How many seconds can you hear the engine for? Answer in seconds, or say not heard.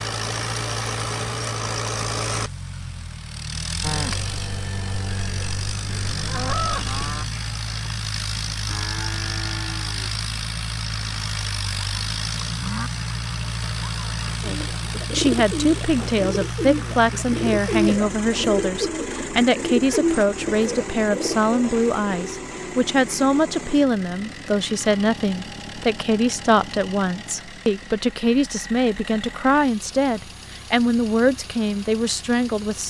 33 s.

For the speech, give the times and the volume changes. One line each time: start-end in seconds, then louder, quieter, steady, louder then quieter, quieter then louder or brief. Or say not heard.
14.4-32.8 steady.